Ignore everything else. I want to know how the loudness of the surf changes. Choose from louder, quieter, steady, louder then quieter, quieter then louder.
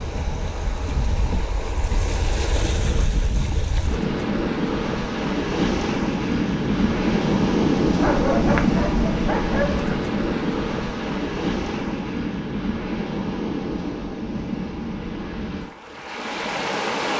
louder then quieter.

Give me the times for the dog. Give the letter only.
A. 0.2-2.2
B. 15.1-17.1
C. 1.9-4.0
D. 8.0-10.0
D.